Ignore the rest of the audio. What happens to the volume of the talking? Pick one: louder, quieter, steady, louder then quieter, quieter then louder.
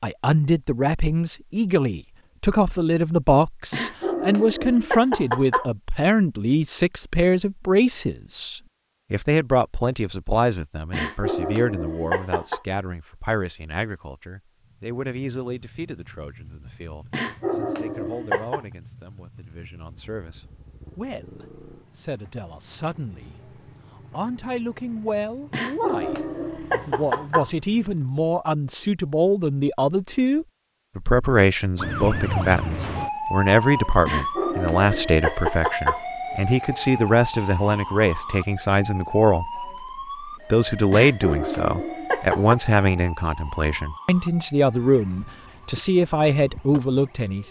quieter then louder.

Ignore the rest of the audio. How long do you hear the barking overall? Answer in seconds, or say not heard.
11 s.